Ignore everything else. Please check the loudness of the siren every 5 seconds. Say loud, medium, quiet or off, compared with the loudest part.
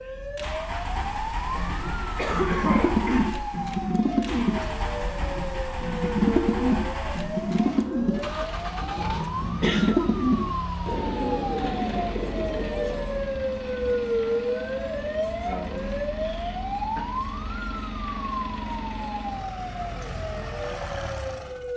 medium, medium, loud, loud, medium.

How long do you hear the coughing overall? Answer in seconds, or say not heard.
4 s.